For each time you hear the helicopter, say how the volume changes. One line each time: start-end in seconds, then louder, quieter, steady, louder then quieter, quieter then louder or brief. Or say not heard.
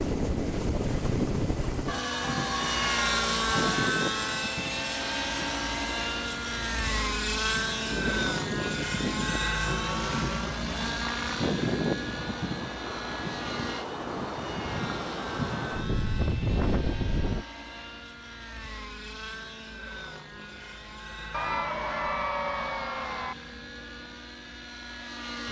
0.0-25.4 quieter.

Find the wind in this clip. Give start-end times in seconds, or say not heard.
0.0-17.4.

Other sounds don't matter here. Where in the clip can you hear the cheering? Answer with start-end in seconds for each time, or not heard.
1.9-3.9, 21.3-23.4.